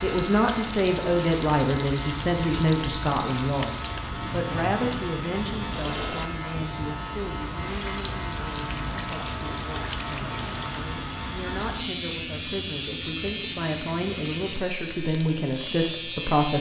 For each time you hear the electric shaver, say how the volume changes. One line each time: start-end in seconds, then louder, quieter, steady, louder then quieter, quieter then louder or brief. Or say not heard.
0.0-16.5 steady.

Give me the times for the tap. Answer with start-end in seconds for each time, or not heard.
0.0-16.4.